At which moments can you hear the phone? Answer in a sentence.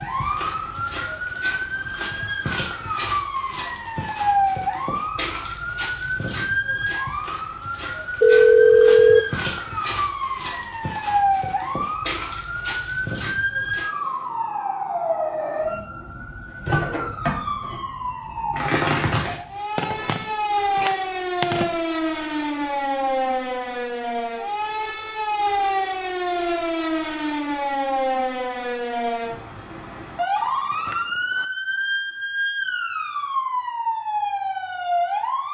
You can hear the phone from 8.2 to 9.2 s, from 19.8 to 21.7 s and from 30.4 to 31.4 s.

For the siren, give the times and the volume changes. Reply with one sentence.
The siren can be heard from 0.0 to 35.4 s, at a steady volume.